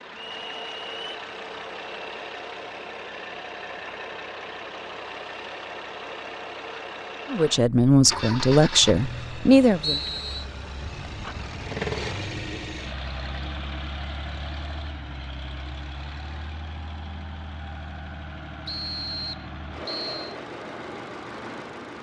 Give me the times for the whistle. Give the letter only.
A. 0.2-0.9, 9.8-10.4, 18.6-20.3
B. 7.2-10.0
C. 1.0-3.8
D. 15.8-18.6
A.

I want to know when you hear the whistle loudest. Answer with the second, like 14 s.
10 s.